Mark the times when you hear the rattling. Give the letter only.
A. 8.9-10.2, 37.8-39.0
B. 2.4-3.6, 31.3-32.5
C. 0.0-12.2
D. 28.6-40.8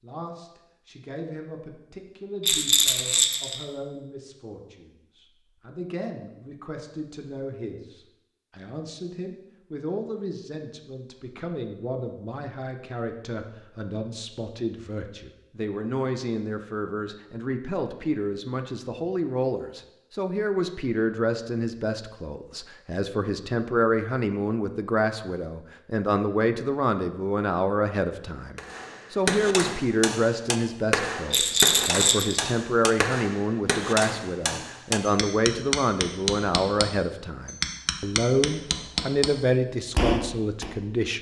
B.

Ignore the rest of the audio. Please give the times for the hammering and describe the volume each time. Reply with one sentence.
You can hear the hammering from 28.6 to 40.8 s, at a steady volume.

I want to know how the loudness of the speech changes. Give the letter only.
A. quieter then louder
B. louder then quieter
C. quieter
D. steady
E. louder
E.